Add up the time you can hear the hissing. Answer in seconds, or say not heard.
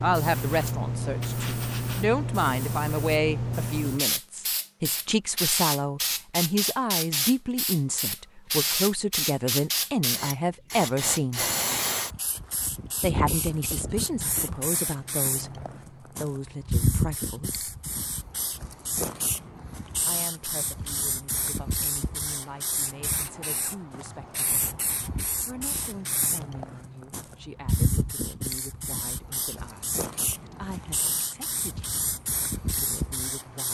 34 s.